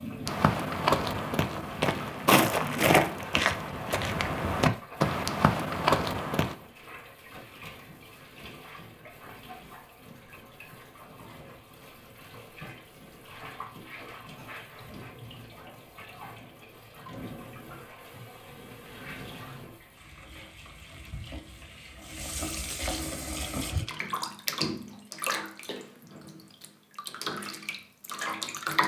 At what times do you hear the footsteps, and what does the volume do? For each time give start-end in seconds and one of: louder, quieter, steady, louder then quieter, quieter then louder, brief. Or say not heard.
0.2-6.5 steady.